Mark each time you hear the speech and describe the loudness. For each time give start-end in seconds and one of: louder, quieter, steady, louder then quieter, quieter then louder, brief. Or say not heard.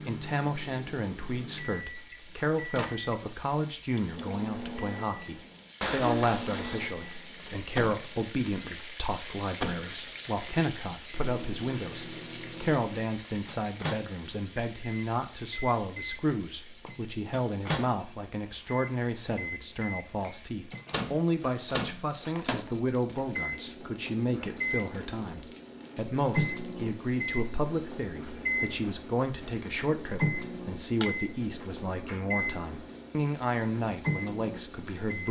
0.1-35.2 steady.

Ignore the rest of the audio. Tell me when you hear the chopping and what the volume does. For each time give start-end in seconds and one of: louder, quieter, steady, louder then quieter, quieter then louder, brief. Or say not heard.
not heard.